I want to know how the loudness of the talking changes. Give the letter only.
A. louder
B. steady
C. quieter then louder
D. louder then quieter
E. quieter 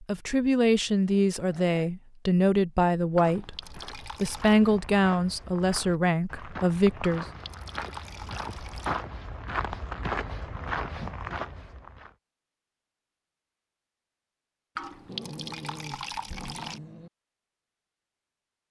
B.